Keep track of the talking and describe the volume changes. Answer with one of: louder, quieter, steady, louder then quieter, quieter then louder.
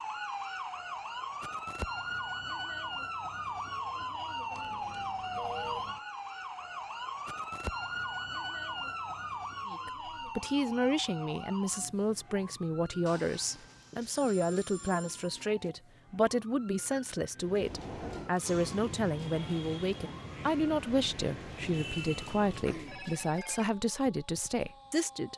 steady.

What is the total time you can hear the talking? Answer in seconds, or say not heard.
16 s.